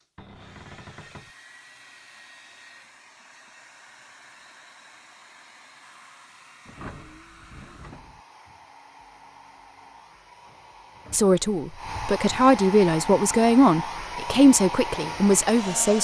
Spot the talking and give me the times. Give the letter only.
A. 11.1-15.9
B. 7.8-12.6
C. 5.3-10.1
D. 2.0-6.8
A.